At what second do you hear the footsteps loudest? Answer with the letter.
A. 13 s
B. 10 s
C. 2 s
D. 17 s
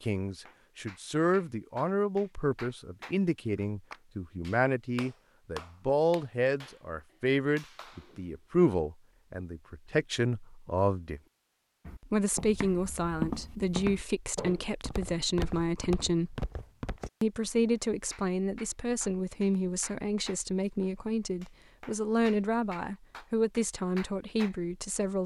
A.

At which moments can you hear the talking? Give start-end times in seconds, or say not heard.
0.0-11.2, 12.0-16.4, 17.2-25.2.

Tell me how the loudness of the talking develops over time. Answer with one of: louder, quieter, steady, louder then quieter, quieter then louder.
steady.